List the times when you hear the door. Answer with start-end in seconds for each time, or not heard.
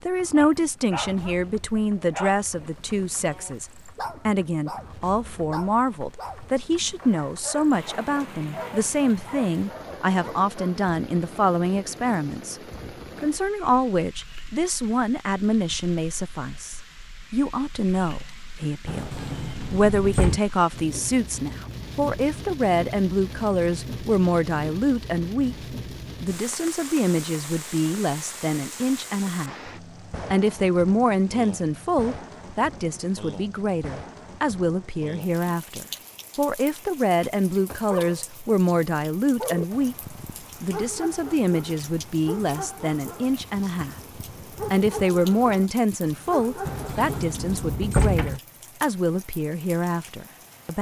18.9-20.4, 46.6-48.4.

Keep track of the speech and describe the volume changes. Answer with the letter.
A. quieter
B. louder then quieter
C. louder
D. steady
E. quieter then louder
D.